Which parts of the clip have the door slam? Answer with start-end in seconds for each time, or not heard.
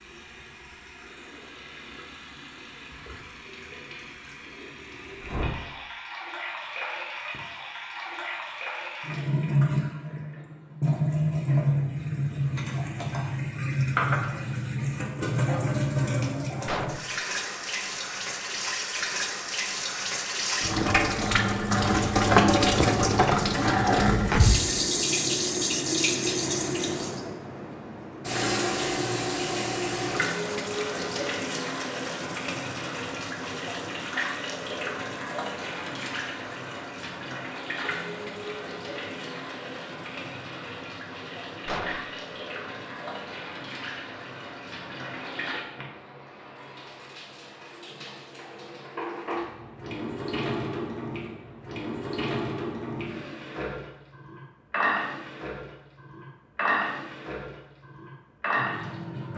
16.6-17.2, 41.6-42.2.